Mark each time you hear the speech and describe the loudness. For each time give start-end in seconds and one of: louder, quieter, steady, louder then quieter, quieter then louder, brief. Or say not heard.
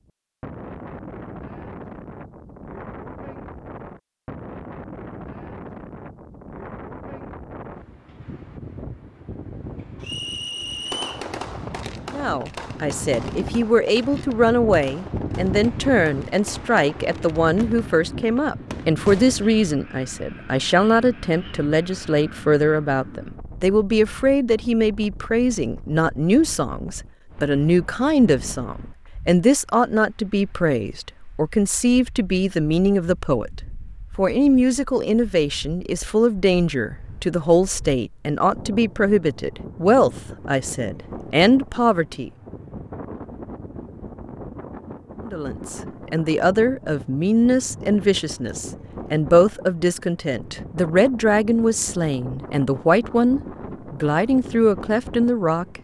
12.1-33.5 steady
34.1-42.3 steady
45.2-55.7 steady.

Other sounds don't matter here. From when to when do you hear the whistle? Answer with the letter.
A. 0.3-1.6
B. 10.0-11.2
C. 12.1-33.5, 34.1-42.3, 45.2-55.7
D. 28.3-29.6
B.